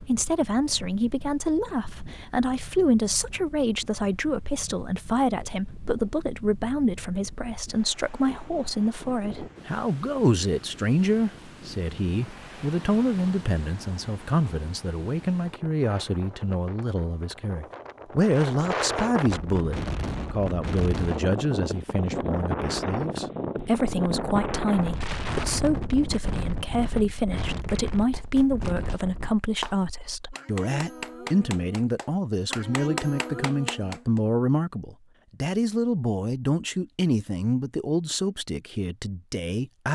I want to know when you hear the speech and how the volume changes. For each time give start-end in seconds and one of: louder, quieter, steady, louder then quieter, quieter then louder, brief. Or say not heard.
0.0-39.8 steady.